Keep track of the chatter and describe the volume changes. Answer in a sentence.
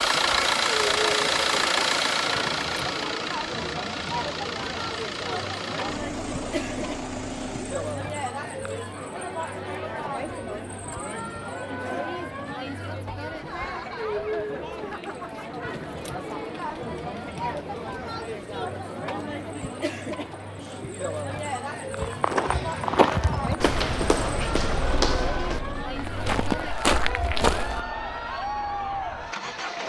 The volume of the chatter stays about the same.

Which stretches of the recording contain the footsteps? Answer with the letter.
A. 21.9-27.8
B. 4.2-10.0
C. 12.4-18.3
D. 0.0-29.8
A.